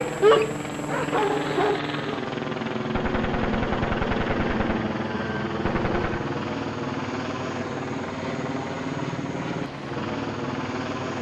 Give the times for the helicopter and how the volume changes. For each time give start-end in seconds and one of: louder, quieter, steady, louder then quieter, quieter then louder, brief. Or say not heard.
0.0-11.1 steady.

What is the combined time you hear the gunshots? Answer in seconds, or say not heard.
3 s.